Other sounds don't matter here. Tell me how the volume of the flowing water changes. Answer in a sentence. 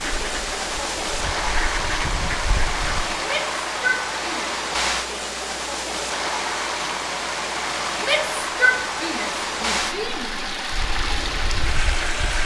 The loudness of the flowing water stays about the same.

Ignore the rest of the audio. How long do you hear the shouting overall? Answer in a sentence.
The shouting can be heard for 4 seconds in total.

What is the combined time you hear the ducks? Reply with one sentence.
You can hear the ducks for 5 seconds altogether.